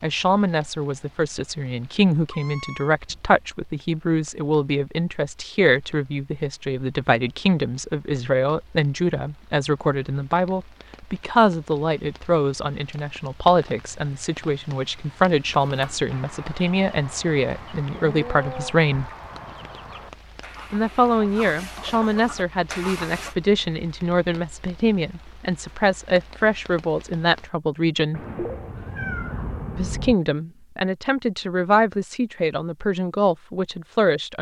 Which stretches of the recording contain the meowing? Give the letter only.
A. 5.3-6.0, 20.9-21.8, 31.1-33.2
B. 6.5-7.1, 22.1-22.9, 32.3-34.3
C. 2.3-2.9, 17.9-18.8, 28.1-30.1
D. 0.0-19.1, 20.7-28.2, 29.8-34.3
C.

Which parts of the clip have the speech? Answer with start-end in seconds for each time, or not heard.
0.0-19.1, 20.7-28.2, 29.8-34.3.